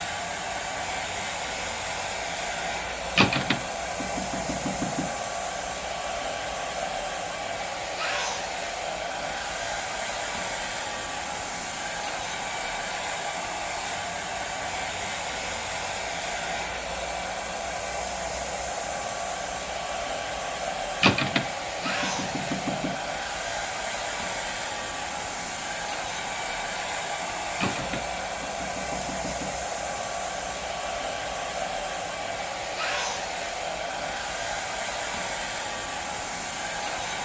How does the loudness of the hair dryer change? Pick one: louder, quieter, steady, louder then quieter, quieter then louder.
steady.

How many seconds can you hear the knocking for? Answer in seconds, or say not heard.
6 s.